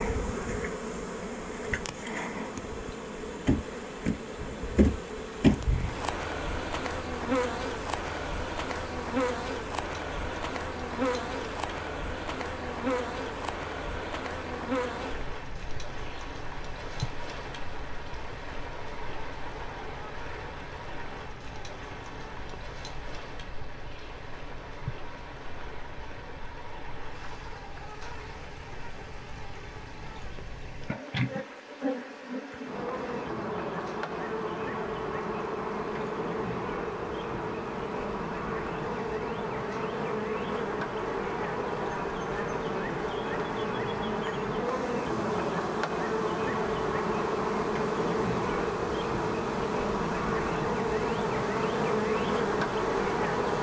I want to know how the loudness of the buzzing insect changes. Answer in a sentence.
The volume of the buzzing insect goes down, then up.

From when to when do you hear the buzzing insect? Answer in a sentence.
The buzzing insect can be heard from 0.0 to 53.5 s.